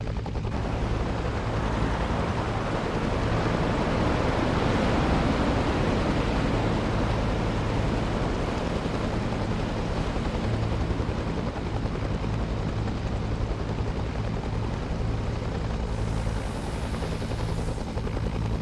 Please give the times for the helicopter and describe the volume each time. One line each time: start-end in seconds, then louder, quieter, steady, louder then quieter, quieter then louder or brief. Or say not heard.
0.0-18.5 steady.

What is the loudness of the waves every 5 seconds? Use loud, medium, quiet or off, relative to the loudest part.
loud, loud, medium, quiet.